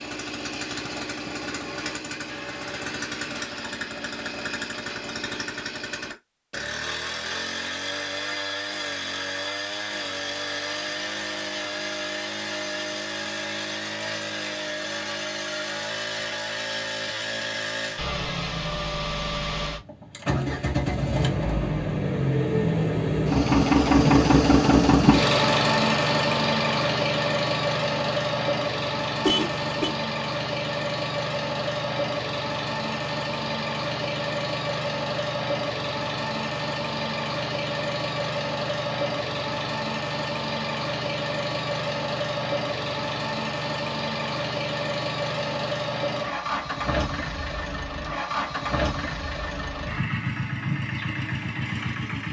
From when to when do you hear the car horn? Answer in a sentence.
You can hear the car horn from 29.2 to 29.9 s.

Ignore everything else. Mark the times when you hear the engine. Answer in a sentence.
The engine can be heard from 0.0 to 52.2 s.